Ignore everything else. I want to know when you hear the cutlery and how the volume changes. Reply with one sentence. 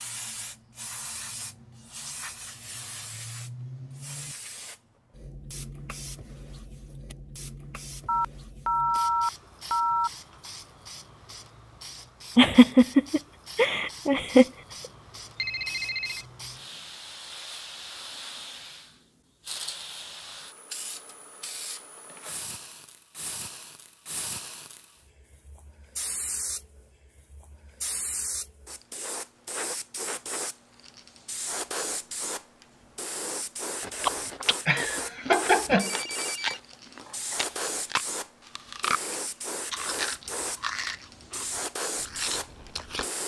The cutlery can't be heard in this clip.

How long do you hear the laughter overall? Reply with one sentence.
You can hear the laughter for 3 seconds altogether.